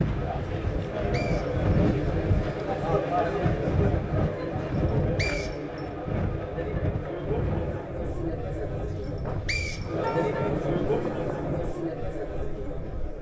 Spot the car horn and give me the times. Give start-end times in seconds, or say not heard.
9.2-10.6.